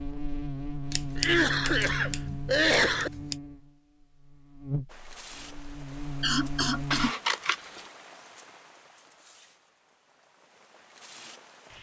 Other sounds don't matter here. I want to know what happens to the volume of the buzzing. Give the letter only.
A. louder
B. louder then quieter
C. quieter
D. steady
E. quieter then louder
E.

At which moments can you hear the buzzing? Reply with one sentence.
The buzzing can be heard from 0.0 to 7.1 s.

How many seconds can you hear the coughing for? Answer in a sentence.
The coughing can be heard for 3 seconds in total.